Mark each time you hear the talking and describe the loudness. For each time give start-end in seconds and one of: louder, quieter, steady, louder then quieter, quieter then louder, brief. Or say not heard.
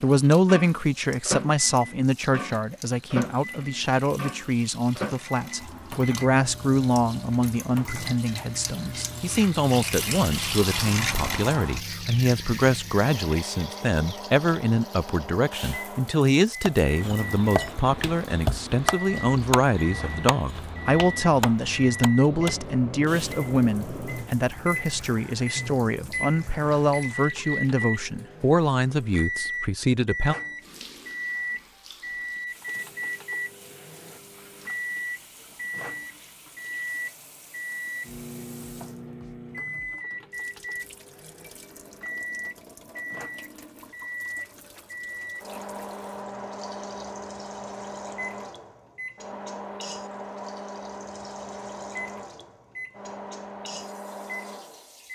0.0-30.4 steady.